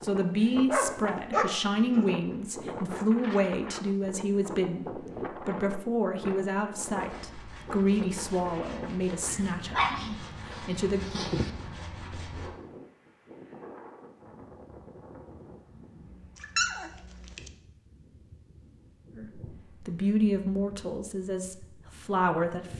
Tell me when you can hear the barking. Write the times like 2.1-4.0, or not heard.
0.7-2.0, 9.7-11.5, 16.4-17.5.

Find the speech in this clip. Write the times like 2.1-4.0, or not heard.
0.0-11.2, 19.1-22.7.